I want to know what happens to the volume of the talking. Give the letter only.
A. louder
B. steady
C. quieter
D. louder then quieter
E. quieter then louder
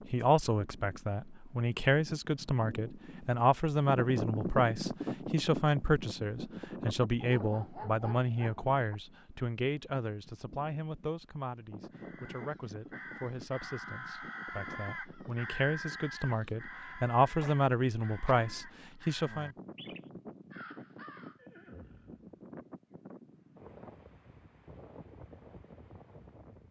E.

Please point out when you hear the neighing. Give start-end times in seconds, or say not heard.
21.4-22.3.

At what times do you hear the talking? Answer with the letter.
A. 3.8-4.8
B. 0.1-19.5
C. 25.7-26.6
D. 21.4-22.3
B.